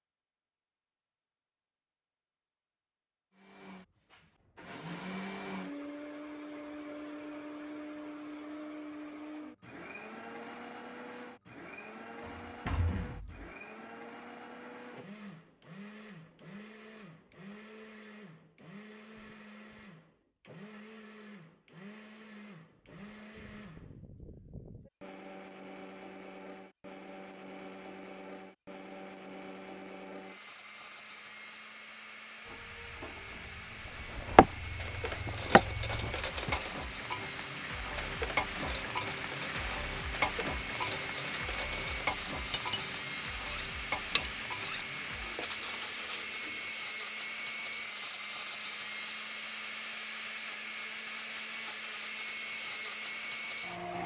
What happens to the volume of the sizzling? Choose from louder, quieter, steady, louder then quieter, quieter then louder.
louder then quieter.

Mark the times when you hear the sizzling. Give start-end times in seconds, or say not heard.
32.4-46.8.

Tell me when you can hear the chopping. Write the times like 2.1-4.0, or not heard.
33.9-36.5.